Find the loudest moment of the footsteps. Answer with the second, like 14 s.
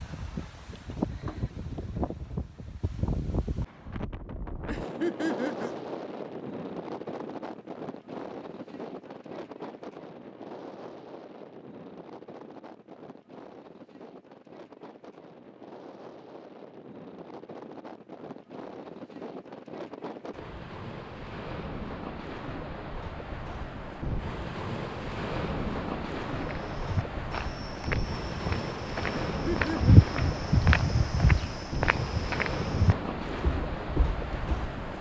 30 s.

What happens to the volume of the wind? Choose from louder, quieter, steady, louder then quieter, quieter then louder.
quieter then louder.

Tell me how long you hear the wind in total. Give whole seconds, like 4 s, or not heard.
35 s.